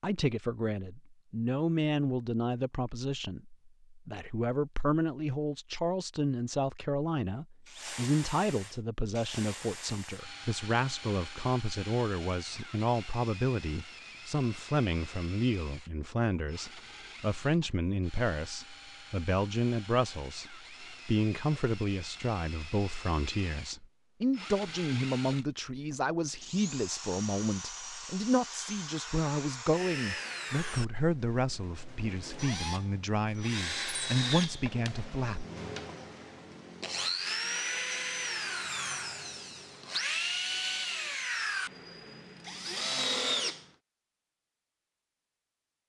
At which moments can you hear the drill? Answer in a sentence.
The drill can be heard from 7.7 to 43.7 s.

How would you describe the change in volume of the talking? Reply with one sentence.
The loudness of the talking stays about the same.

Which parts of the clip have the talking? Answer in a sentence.
The talking can be heard from 0.0 to 35.5 s.